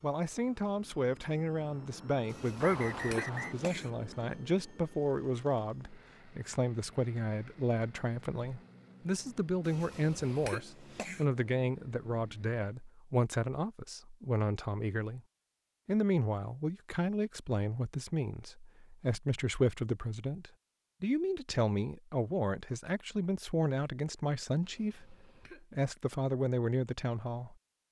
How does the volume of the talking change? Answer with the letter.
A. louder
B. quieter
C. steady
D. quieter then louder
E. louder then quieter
C.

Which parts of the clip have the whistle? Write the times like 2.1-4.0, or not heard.
2.6-3.5.